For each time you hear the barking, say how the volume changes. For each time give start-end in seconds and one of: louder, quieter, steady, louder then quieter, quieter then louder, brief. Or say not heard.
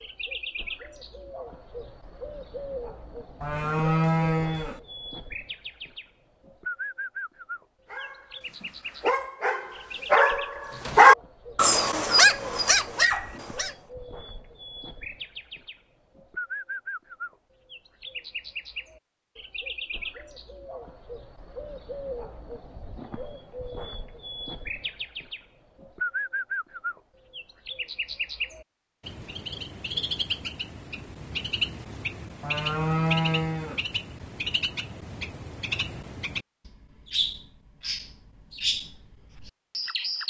7.9-13.8 louder then quieter.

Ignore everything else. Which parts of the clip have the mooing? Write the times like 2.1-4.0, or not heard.
3.4-4.8, 32.4-33.8.